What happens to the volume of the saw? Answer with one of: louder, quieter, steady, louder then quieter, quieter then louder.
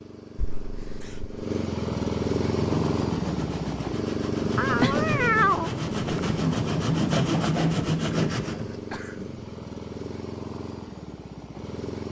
louder.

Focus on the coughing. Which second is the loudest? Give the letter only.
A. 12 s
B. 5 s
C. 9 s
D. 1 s
C.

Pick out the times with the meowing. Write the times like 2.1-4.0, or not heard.
4.5-6.6.